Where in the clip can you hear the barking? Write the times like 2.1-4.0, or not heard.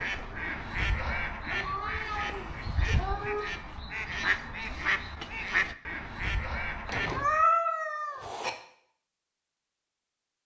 not heard.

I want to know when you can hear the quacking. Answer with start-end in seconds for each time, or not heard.
0.0-7.5.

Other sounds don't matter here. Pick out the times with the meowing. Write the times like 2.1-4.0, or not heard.
1.4-3.5, 6.8-8.5.